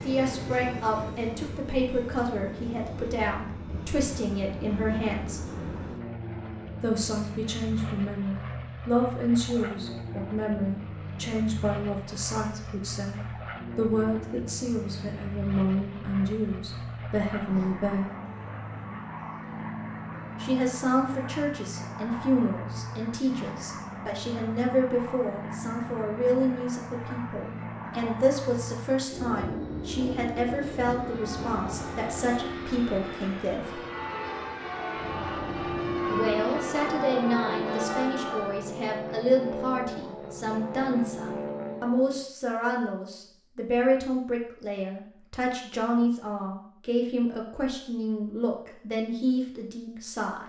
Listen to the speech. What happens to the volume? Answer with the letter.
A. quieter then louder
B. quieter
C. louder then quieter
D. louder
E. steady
E.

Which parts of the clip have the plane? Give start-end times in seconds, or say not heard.
0.0-42.2.